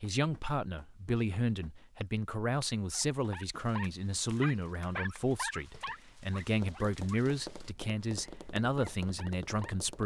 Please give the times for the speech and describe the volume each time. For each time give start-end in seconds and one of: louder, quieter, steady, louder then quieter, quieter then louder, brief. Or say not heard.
0.0-10.0 steady.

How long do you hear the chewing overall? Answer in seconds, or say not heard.
not heard.